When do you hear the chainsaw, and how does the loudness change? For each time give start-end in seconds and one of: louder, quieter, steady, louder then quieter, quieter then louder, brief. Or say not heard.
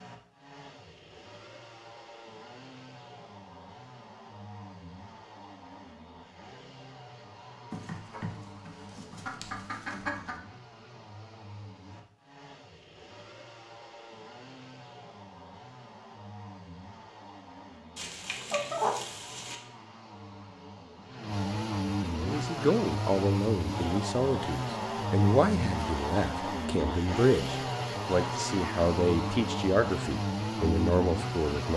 0.0-31.7 louder.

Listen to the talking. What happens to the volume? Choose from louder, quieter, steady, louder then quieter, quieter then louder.
steady.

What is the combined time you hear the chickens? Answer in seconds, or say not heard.
4 s.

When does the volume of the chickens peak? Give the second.
19 s.